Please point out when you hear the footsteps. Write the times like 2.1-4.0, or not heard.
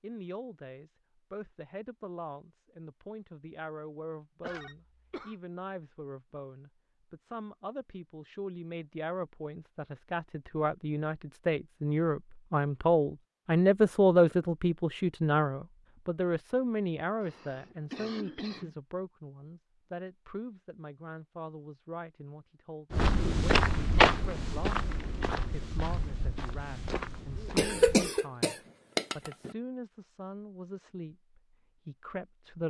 22.9-28.1.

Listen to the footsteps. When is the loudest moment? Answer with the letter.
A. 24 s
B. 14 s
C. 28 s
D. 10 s
A.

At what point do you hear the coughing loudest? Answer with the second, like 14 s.
28 s.